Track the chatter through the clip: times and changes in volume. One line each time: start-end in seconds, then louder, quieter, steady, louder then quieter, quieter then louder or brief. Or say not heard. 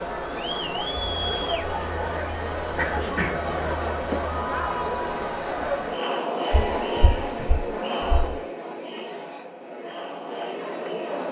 0.0-11.2 quieter.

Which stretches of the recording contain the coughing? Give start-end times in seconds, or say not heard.
2.8-3.4.